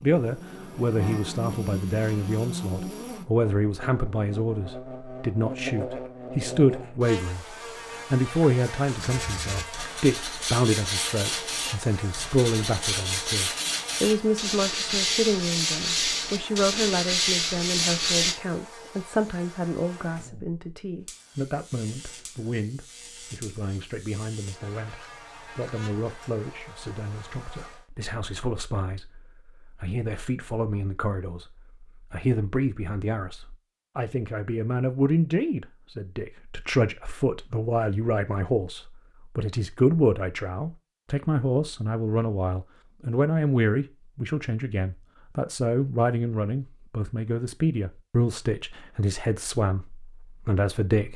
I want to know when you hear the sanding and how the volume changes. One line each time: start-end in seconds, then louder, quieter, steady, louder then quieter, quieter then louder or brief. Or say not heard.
8.9-18.4 louder.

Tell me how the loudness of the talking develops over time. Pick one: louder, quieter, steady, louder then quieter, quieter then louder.
quieter then louder.